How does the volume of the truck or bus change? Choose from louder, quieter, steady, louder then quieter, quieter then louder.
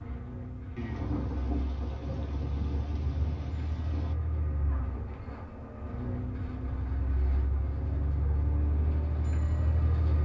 louder.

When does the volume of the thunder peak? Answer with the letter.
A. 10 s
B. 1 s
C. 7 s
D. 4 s
B.